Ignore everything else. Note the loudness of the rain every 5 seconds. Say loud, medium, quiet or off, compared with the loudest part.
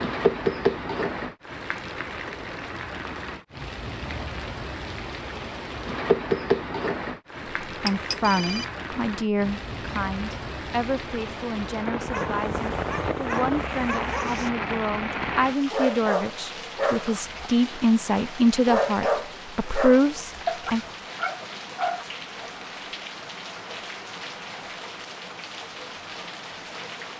loud, loud, loud, medium, medium, medium.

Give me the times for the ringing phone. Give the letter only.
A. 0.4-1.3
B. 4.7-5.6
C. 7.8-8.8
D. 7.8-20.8
C.